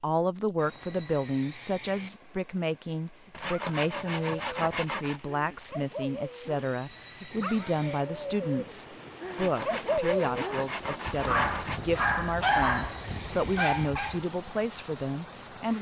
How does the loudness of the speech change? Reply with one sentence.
The loudness of the speech stays about the same.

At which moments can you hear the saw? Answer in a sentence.
The saw can be heard from 3.3 to 5.2 s and from 9.3 to 11.8 s.